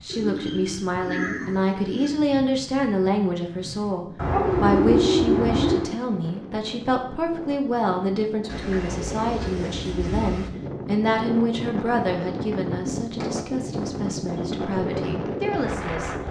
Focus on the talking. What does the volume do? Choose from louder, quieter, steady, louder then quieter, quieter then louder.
quieter.